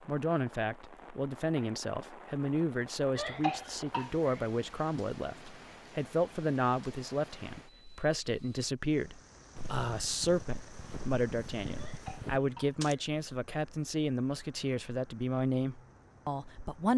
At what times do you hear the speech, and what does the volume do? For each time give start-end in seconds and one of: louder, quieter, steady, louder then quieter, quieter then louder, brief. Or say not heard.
0.1-16.9 steady.